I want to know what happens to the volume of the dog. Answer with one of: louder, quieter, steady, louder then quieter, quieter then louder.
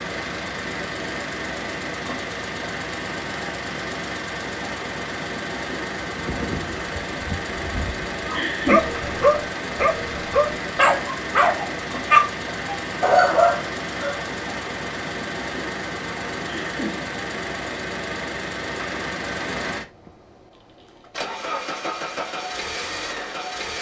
louder.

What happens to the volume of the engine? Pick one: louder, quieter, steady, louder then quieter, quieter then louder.
steady.